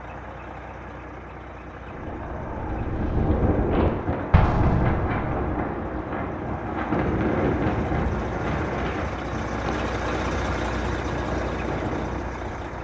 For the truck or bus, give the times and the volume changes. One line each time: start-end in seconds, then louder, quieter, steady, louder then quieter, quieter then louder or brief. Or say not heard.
0.0-12.8 louder.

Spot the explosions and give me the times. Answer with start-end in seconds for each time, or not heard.
4.3-5.5.